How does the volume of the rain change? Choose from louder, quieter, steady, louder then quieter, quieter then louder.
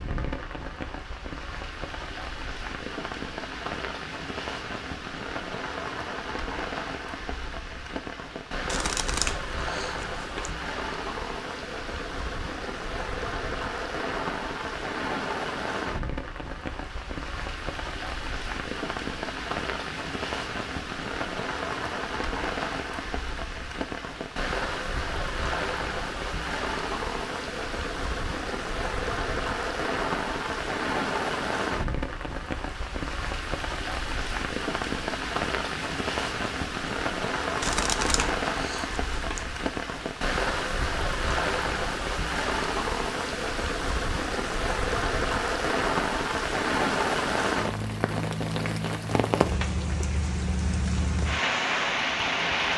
louder.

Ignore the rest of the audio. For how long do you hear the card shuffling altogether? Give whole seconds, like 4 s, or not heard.
4 s.